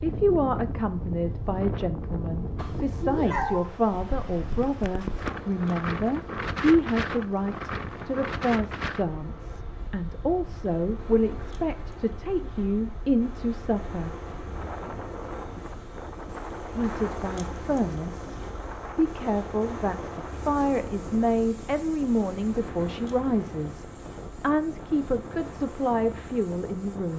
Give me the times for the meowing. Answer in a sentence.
You can hear the meowing from 2.5 to 3.6 s.